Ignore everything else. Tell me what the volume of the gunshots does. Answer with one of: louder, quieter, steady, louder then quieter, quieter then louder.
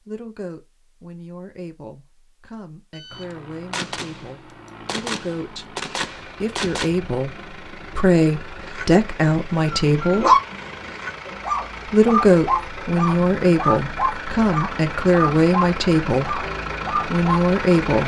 quieter then louder.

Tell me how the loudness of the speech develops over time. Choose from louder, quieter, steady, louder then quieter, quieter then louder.
louder.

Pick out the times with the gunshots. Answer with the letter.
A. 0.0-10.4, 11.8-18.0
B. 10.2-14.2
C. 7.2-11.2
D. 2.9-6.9
D.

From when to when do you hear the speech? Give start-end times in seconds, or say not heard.
0.0-10.4, 11.8-18.0.